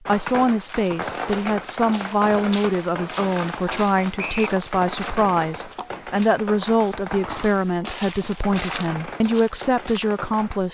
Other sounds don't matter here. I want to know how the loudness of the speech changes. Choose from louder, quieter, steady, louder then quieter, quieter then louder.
steady.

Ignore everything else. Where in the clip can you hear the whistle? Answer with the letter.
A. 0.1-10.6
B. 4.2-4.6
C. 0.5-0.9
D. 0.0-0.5
B.